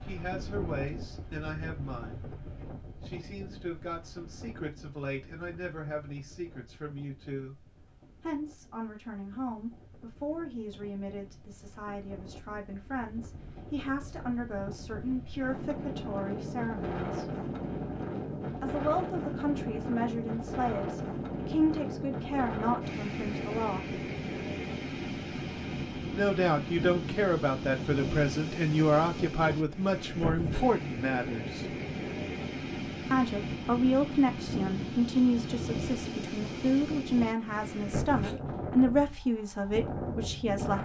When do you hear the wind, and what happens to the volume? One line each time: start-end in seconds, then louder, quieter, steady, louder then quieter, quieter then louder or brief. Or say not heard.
0.0-40.8 louder.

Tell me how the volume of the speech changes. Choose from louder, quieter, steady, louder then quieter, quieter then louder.
louder.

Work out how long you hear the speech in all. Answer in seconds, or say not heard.
35 s.